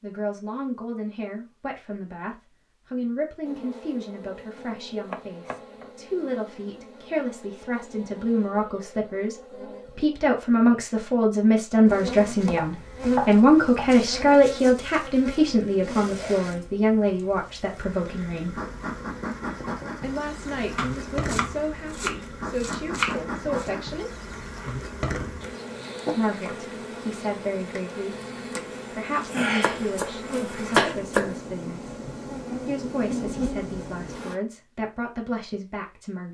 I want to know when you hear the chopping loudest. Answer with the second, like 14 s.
31 s.